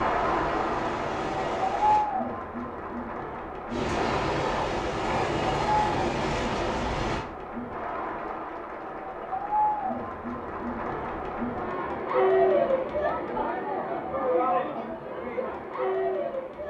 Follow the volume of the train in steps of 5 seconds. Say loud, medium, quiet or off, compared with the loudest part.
loud, loud, off, off.